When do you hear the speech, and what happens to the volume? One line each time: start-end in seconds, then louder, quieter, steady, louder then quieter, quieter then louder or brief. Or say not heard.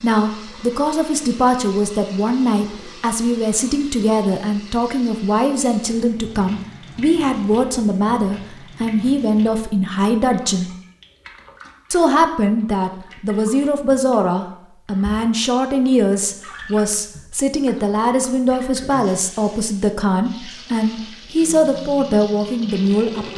0.0-10.7 steady
11.9-23.3 steady.